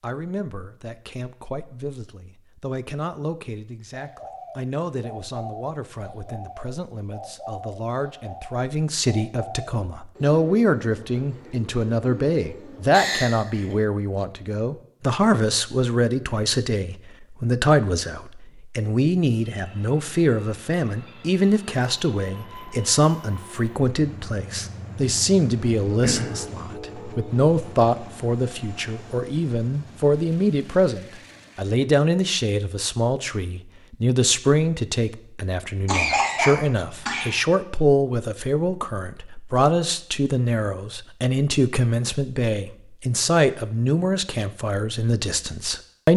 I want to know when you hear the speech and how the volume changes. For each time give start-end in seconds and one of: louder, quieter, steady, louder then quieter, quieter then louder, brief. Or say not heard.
0.0-46.1 louder.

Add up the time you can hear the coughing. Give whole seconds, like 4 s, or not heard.
3 s.